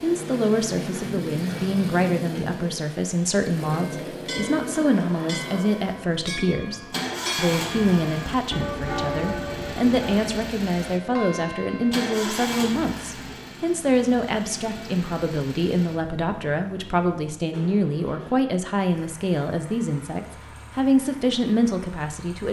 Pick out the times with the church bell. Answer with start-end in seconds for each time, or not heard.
3.7-12.1.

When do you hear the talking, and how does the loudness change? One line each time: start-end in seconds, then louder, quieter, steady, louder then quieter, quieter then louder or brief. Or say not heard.
0.0-22.4 steady.